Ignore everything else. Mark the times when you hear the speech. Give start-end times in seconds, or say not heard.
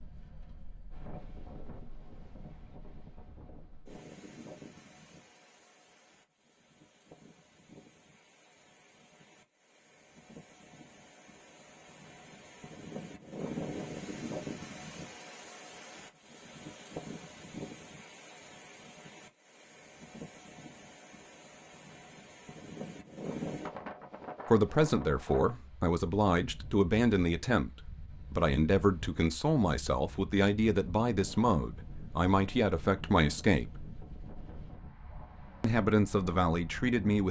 24.5-27.7, 28.3-33.7, 35.6-37.2.